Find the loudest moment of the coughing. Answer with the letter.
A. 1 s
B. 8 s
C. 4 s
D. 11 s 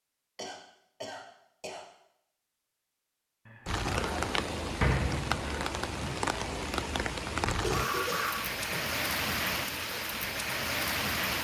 B.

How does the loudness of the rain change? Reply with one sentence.
The volume of the rain stays about the same.